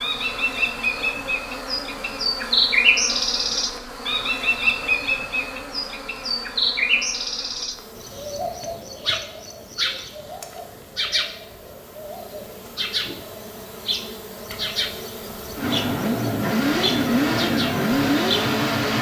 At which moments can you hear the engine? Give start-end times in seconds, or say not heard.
15.6-18.9.